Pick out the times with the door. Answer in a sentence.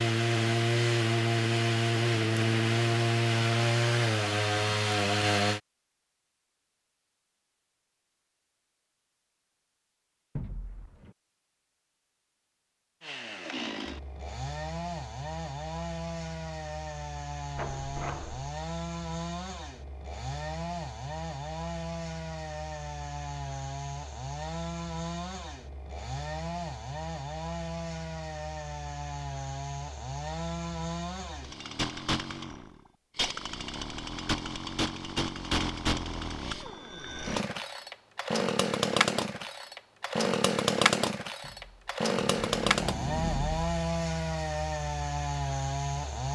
You can hear the door from 10.3 to 11.2 s, from 17.6 to 18.5 s and from 41.4 to 43.7 s.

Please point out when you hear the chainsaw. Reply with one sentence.
You can hear the chainsaw from 0.0 to 5.6 s and from 13.0 to 46.3 s.